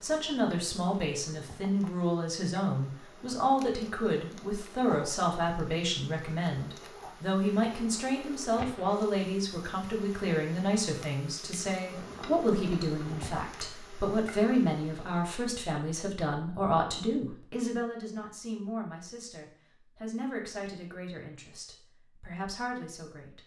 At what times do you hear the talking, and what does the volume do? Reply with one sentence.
You can hear the talking from 0.0 to 23.4 s, getting quieter.